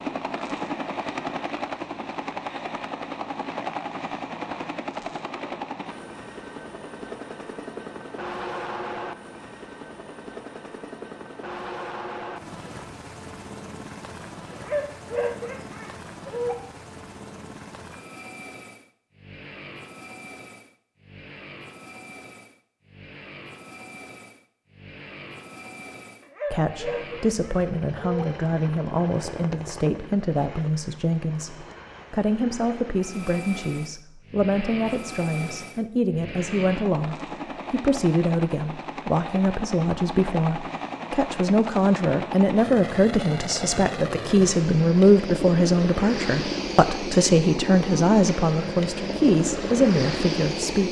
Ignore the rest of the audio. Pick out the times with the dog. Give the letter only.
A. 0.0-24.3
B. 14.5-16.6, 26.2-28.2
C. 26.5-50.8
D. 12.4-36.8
B.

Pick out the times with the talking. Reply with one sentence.
You can hear the talking from 26.5 to 50.8 s.